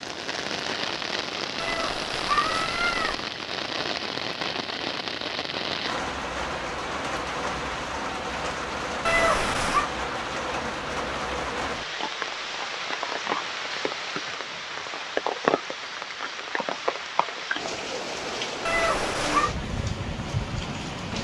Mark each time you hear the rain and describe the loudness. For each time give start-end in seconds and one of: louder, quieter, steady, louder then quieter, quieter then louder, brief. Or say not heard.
0.0-21.1 steady.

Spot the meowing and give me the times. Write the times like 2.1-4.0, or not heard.
1.6-3.2, 9.1-9.8, 18.6-19.6.